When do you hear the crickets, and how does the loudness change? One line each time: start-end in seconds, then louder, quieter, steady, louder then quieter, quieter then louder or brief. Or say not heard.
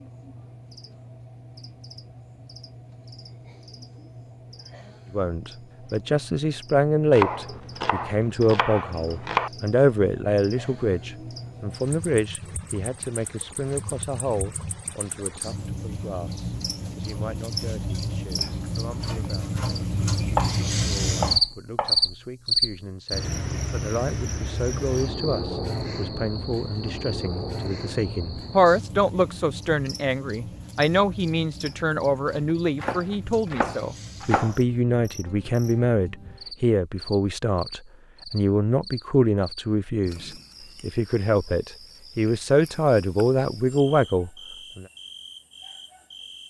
0.0-46.4 louder then quieter.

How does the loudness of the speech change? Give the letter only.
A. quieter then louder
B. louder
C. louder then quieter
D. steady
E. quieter
A.